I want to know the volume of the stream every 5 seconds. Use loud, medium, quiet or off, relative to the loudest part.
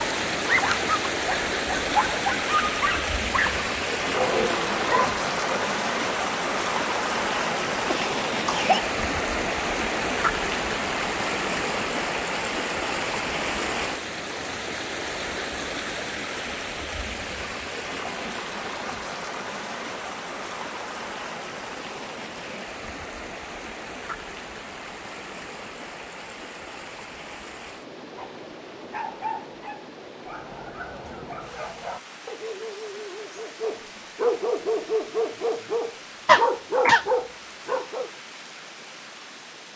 loud, loud, loud, medium, medium, quiet, quiet, quiet.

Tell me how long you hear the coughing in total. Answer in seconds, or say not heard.
2 s.